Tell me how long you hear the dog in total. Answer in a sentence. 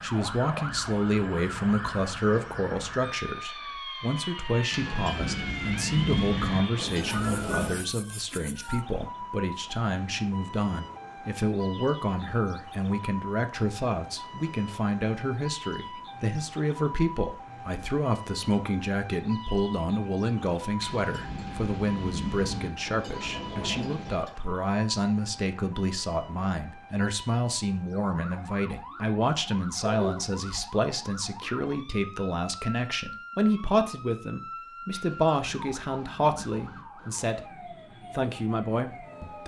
The dog can't be heard in this clip.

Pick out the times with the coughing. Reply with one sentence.
You can hear the coughing from 29.8 to 30.6 s.